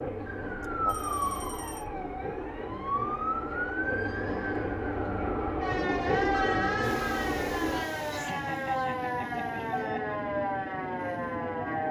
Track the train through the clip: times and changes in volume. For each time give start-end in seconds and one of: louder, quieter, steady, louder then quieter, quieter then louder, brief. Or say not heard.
0.0-11.8 louder then quieter.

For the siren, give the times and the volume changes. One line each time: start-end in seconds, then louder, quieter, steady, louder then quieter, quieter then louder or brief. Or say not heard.
0.1-11.8 steady.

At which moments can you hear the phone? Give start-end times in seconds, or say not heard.
0.8-1.9, 6.3-7.1.